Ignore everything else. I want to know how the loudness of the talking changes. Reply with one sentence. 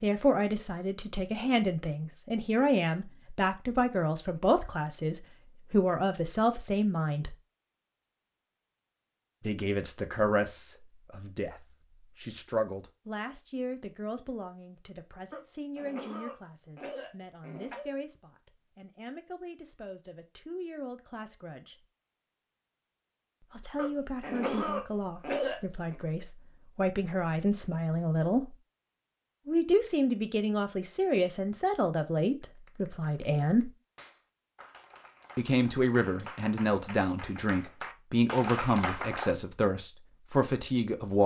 The volume of the talking goes down, then up.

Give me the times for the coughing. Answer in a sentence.
The coughing can be heard from 15.3 to 17.9 s and from 23.8 to 25.9 s.